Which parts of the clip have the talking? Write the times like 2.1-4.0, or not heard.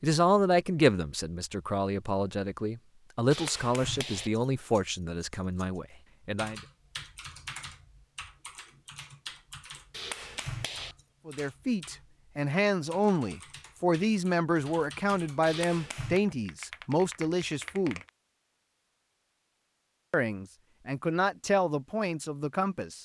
0.0-6.6, 11.2-18.0, 20.1-23.0.